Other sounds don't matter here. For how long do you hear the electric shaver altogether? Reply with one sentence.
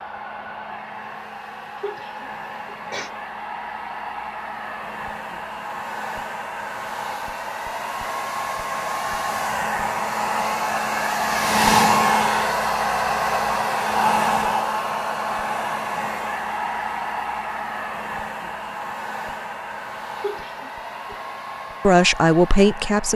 You can't hear the electric shaver here.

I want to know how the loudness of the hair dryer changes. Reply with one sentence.
The loudness of the hair dryer goes up, then down.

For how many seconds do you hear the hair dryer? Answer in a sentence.
The hair dryer can be heard for 23 seconds in total.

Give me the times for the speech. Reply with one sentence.
The speech can be heard from 21.8 to 23.1 s.